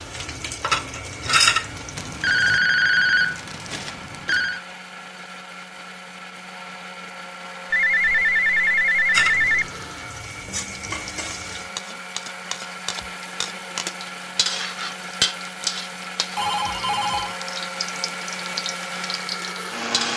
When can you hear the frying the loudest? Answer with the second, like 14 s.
1 s.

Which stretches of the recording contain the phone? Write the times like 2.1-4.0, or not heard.
1.9-4.6, 7.7-9.7, 16.4-17.4.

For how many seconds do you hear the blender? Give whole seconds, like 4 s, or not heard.
20 s.